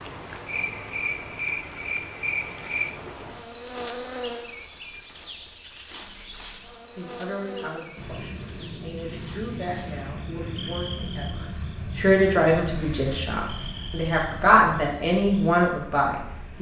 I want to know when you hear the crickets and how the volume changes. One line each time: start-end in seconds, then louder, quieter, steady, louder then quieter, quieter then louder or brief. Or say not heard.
0.0-16.5 quieter.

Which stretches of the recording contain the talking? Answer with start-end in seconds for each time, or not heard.
6.9-16.5.